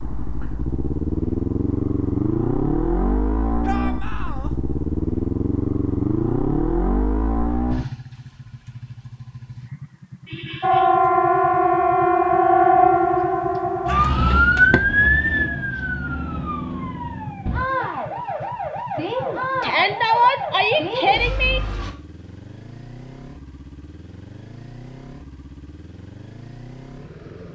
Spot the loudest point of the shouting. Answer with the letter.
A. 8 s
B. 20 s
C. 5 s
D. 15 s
B.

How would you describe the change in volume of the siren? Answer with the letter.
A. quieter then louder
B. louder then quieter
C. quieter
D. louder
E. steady
C.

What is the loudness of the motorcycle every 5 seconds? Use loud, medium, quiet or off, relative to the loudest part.
loud, loud, quiet, quiet, quiet, quiet.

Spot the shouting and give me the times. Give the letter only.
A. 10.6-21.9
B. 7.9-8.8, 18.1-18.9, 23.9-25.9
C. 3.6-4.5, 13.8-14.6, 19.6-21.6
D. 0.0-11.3
C.